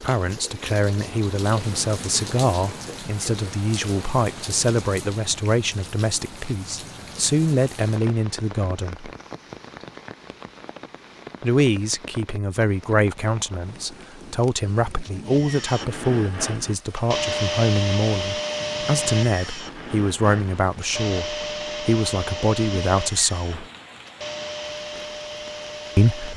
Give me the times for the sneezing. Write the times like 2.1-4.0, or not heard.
not heard.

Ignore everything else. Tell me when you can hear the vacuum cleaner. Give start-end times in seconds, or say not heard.
15.2-26.3.